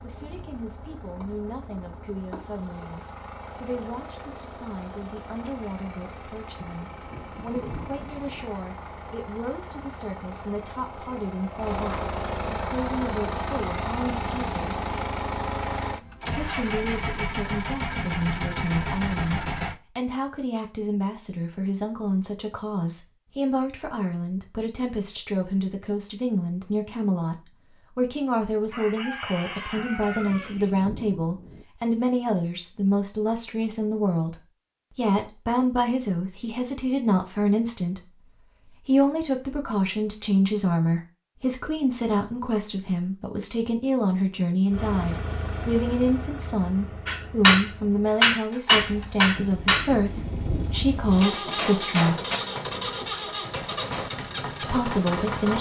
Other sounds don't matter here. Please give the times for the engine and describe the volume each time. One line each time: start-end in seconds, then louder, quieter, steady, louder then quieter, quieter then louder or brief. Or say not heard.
0.0-19.8 louder
44.7-55.5 quieter then louder.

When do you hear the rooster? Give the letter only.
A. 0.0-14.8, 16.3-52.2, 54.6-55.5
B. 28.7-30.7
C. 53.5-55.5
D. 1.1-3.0
B.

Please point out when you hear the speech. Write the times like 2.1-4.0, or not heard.
0.0-14.8, 16.3-52.2, 54.6-55.5.